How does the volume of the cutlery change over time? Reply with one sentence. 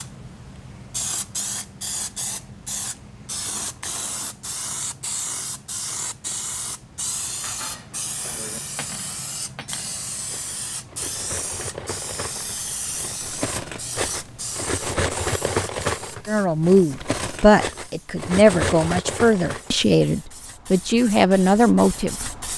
The volume of the cutlery goes up.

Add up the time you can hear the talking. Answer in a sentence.
The talking can be heard for 6 seconds in total.